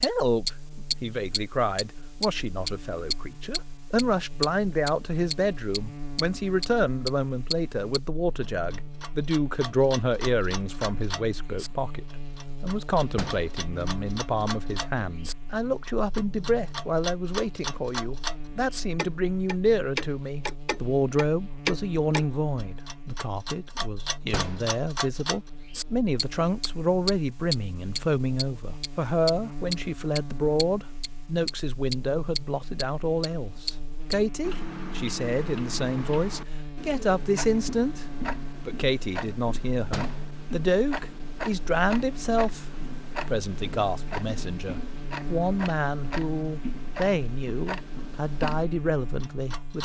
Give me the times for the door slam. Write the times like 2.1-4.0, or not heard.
13.2-13.6, 24.3-24.8, 39.9-40.4.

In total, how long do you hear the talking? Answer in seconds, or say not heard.
49 s.